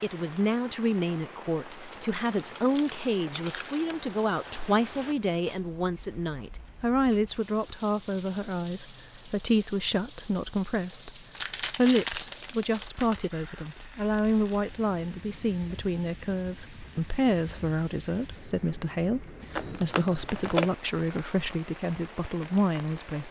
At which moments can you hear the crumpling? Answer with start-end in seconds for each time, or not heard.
1.9-4.0, 11.3-13.3, 19.5-20.8.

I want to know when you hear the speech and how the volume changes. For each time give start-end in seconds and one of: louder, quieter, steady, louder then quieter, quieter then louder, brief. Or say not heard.
0.0-23.2 steady.